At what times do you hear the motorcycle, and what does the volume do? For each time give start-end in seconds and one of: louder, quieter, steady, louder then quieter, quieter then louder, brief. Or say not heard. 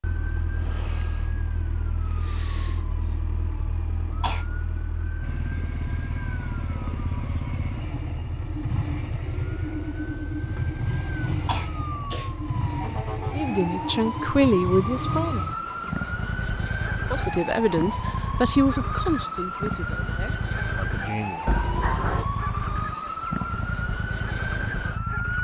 5.2-25.3 steady.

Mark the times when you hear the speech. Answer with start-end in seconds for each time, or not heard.
13.3-15.4, 17.1-21.4.